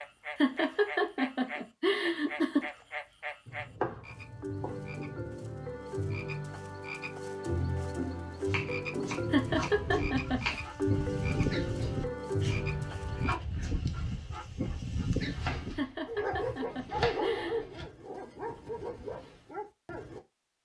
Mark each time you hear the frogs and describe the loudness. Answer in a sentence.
The frogs can be heard from 0.0 to 13.4 s, getting louder.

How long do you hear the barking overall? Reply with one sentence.
The barking can be heard for 11 seconds in total.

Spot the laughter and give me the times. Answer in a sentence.
The laughter can be heard from 0.3 to 2.6 s, from 9.3 to 10.6 s and from 15.8 to 17.6 s.